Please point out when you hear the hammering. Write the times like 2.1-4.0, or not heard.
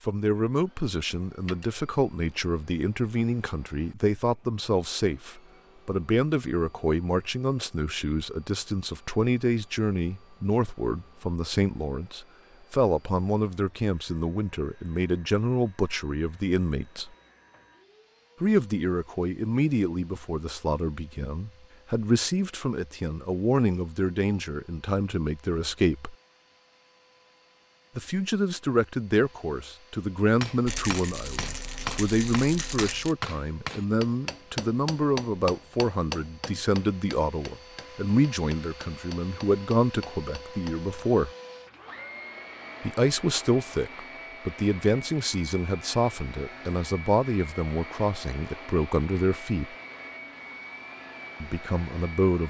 30.4-40.9.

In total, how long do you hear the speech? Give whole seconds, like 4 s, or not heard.
46 s.